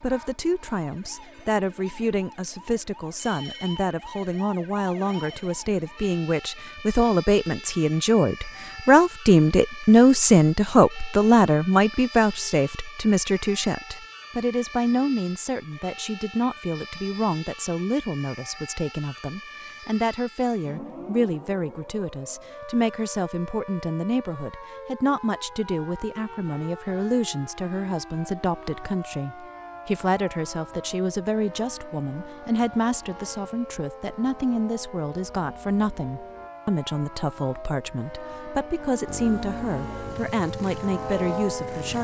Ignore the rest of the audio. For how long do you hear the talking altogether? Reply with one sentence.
You can hear the talking for 42 seconds altogether.